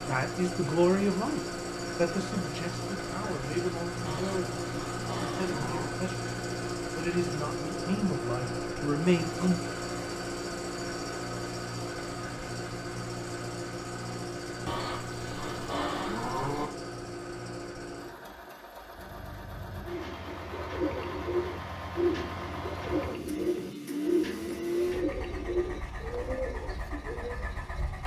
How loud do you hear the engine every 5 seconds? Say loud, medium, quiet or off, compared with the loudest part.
loud, loud, loud, medium, loud, medium.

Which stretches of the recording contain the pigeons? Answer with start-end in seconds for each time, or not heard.
19.9-27.6.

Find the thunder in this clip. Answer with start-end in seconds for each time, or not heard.
not heard.